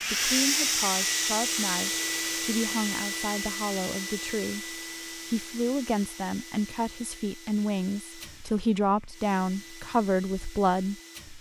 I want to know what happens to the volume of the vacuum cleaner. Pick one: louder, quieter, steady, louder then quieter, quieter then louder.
quieter.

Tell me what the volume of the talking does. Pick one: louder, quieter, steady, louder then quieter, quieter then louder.
louder.